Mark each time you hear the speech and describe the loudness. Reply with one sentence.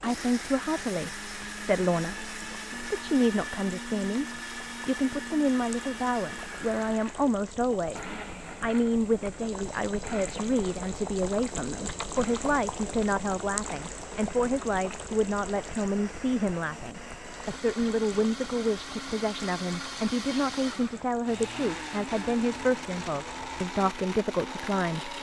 You can hear the speech from 0.0 to 25.1 s, at a steady volume.